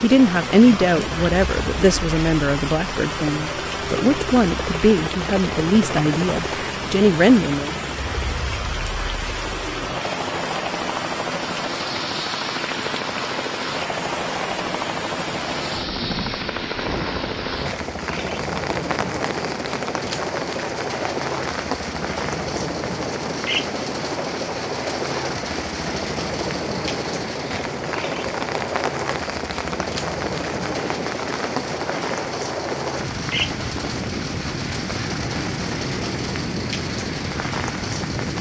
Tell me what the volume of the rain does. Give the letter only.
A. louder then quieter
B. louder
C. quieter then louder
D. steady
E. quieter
D.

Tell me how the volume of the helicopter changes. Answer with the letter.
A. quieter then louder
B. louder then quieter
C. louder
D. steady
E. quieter
D.